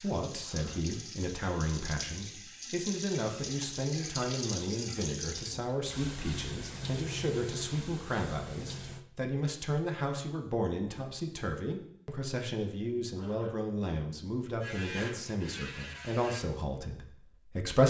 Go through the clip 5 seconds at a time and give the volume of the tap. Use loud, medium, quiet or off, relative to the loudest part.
loud, loud, off, off.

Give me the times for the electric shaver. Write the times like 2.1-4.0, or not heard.
14.6-16.4.